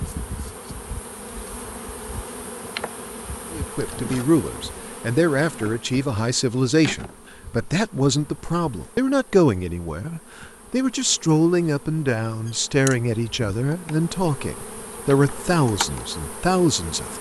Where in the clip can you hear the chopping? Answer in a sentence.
The chopping can't be heard in this clip.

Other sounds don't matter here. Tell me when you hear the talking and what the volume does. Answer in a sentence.
You can hear the talking from 3.5 to 17.1 s, at a steady volume.